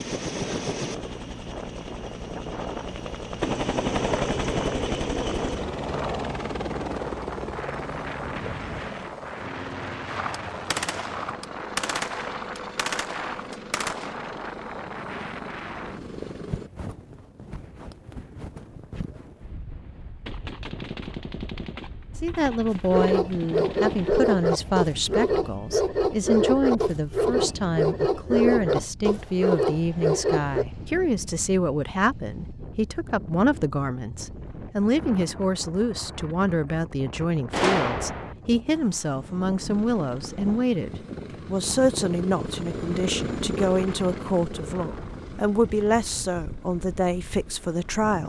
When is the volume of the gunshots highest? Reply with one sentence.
The volume of the gunshots peaks at 38 seconds.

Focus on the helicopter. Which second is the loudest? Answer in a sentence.
The loudest moment of the helicopter is at 4 seconds.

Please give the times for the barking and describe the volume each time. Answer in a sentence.
You can hear the barking from 22.7 to 30.6 s, at a steady volume.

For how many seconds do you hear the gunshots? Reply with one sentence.
The gunshots can be heard for 9 seconds in total.